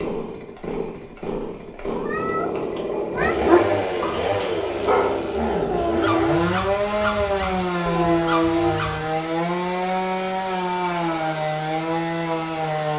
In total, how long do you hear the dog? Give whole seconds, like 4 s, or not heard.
6 s.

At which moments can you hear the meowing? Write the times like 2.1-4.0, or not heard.
1.9-3.4.